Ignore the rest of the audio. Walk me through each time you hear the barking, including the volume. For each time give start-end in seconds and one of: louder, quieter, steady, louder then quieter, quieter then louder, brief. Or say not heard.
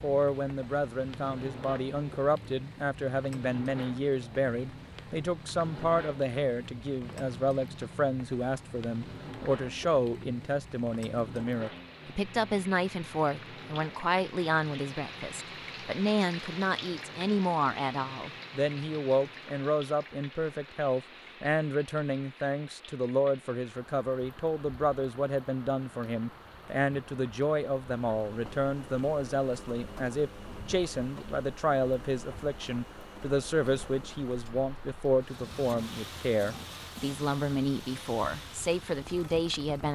not heard.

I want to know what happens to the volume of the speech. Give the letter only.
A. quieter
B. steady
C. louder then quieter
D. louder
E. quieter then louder
B.